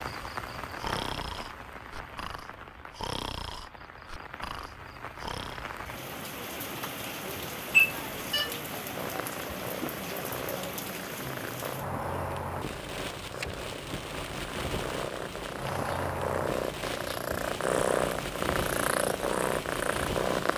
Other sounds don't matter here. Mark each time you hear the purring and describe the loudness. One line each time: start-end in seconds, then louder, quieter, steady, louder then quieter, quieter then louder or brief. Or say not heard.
8.9-20.5 louder.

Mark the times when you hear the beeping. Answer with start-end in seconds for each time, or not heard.
7.7-8.5.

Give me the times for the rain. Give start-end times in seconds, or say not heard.
0.0-20.5.